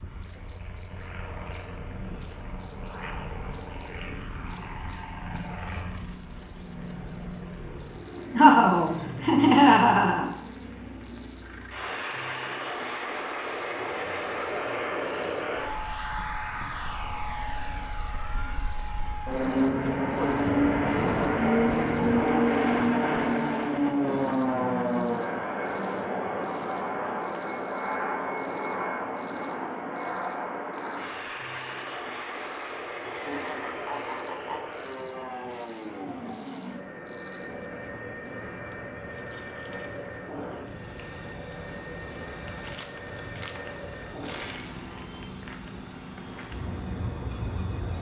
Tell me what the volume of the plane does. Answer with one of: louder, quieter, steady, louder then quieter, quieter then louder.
louder then quieter.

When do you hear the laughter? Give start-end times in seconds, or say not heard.
8.3-10.3, 33.0-34.6.